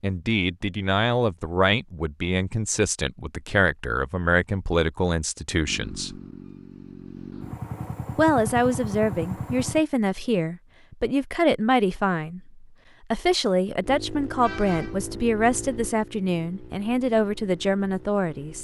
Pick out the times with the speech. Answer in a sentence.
You can hear the speech from 0.0 to 6.2 s and from 8.2 to 18.6 s.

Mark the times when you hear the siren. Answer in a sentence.
You can't hear the siren here.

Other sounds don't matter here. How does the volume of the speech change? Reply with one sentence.
The loudness of the speech stays about the same.